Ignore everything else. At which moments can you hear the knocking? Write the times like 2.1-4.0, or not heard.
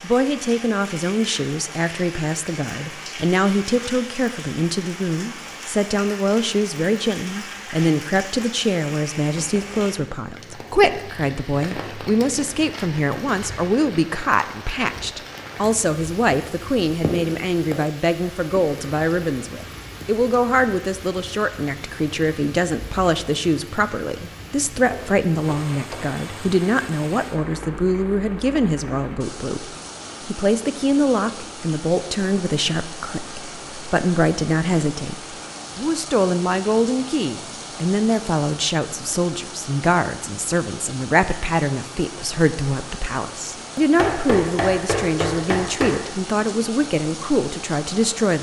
9.3-9.9, 24.9-26.1, 44.0-46.0.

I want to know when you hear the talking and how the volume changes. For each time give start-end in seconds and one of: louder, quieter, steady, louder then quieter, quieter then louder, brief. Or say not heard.
0.0-48.3 steady.